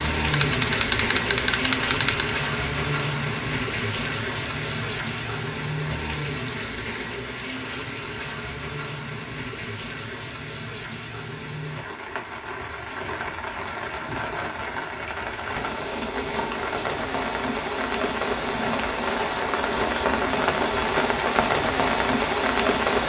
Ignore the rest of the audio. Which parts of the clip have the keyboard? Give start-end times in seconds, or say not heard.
0.3-2.3.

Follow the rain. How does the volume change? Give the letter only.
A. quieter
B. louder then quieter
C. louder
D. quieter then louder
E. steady
D.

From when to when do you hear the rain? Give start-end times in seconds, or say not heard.
0.0-23.0.